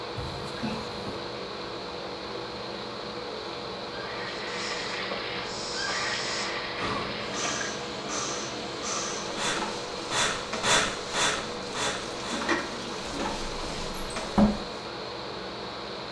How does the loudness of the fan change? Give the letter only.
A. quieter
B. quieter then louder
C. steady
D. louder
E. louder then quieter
C.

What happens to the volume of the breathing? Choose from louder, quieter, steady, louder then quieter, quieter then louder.
louder.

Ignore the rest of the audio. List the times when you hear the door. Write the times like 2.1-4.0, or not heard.
0.1-1.2, 13.1-14.5.